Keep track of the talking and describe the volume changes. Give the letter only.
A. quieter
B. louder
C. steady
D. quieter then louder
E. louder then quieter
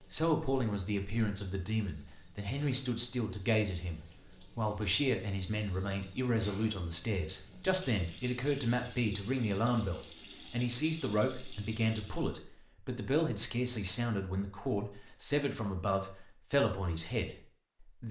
C.